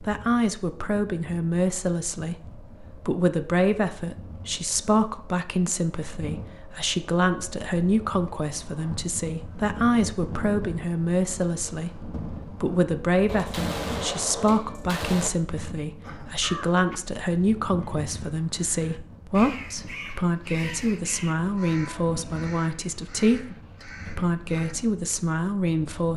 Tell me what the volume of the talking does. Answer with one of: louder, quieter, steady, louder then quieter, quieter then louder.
steady.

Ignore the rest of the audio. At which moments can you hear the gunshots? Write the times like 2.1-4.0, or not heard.
13.2-15.3.